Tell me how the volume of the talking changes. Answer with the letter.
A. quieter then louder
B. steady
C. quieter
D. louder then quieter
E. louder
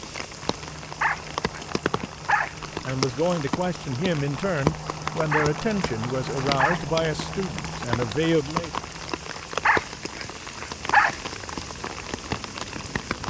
B.